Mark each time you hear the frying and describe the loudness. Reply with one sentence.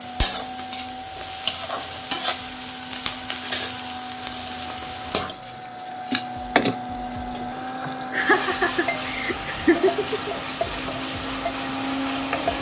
The frying can be heard from 0.0 to 12.5 s, at a steady volume.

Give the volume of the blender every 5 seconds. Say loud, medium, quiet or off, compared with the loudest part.
medium, loud, loud.